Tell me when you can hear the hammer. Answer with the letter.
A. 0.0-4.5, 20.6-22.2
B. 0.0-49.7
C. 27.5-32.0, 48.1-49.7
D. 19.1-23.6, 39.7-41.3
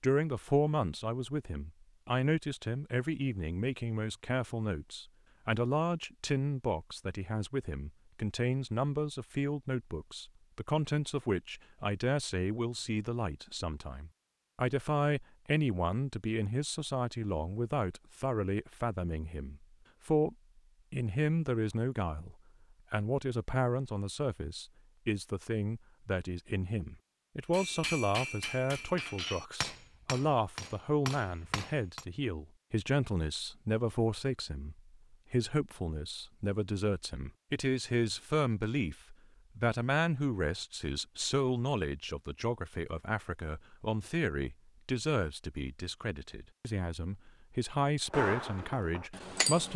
C.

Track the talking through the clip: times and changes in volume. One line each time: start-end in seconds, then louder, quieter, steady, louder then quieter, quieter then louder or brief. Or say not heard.
0.0-49.7 steady.